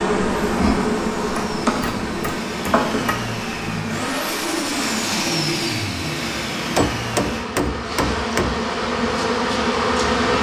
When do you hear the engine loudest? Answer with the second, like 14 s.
5 s.